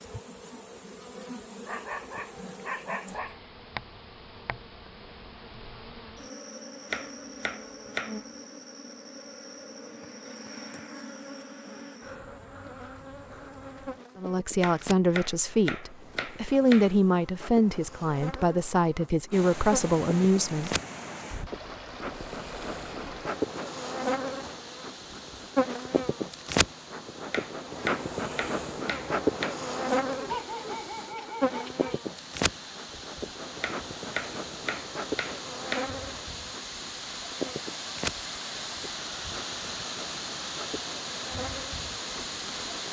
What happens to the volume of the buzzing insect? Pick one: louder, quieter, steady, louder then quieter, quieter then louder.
louder then quieter.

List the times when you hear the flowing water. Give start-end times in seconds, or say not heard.
19.3-42.8.